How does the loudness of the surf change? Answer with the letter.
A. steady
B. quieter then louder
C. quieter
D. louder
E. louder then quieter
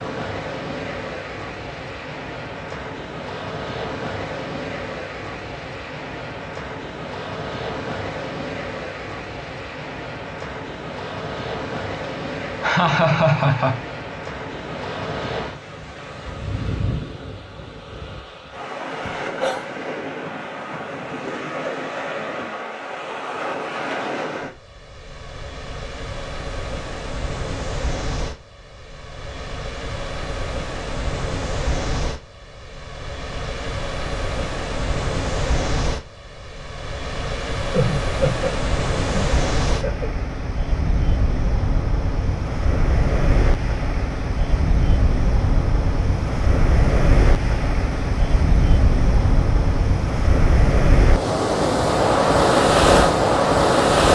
D.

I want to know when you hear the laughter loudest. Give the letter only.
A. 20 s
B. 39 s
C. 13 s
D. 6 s
C.